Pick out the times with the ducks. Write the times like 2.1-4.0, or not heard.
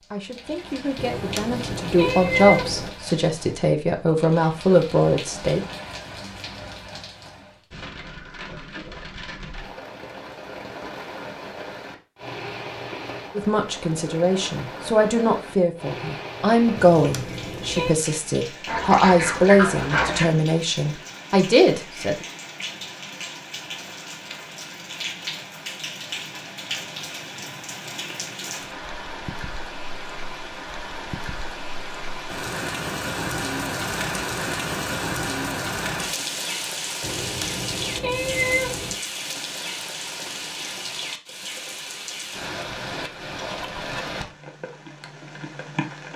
18.6-20.2.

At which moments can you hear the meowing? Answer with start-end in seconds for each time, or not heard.
0.9-2.9, 16.8-17.9, 37.0-39.0.